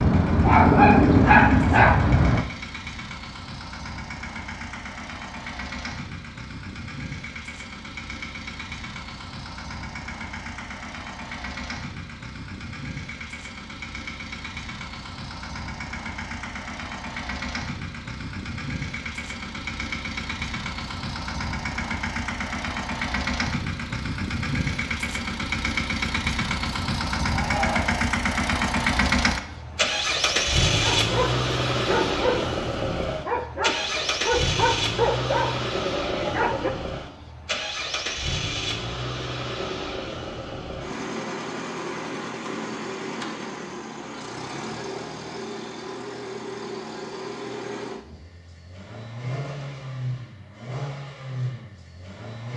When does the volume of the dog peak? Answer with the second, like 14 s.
1 s.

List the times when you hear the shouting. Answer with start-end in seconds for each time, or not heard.
27.3-28.1.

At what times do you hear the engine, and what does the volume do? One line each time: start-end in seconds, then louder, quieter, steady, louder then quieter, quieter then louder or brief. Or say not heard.
0.0-52.5 louder then quieter.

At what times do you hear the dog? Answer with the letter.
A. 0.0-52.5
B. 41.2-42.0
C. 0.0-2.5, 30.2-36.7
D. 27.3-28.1
C.